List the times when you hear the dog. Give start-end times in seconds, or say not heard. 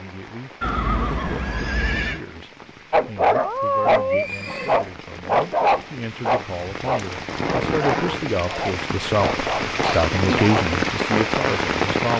2.9-11.2.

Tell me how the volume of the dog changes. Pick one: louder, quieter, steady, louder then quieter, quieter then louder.
quieter.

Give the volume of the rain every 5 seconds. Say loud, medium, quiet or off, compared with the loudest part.
quiet, medium, loud.